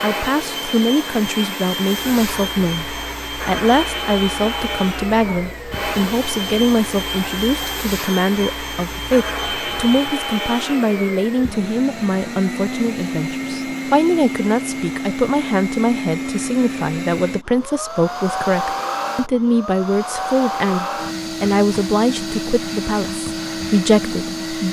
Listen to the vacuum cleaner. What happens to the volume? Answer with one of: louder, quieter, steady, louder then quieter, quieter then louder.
steady.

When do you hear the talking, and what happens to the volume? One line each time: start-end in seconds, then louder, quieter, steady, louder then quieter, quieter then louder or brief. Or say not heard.
0.0-24.6 steady.